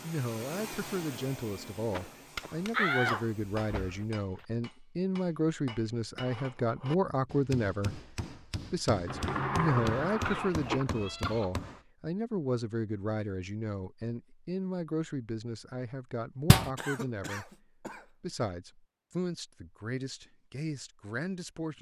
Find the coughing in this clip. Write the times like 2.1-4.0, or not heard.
1.9-4.0, 10.2-11.5, 16.8-18.1.